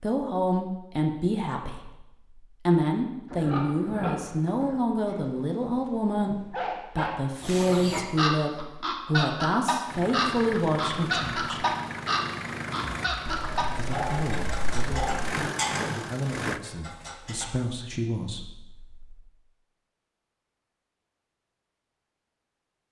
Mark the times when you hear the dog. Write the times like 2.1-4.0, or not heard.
5.0-7.2, 13.2-15.3.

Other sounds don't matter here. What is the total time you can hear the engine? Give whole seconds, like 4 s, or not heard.
7 s.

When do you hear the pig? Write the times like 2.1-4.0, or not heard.
3.3-4.8.